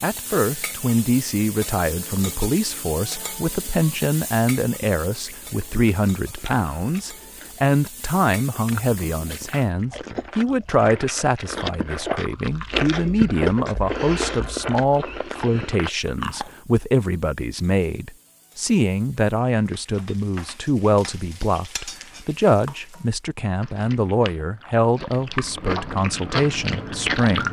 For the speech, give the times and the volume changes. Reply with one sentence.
You can hear the speech from 0.0 to 27.4 s, at a steady volume.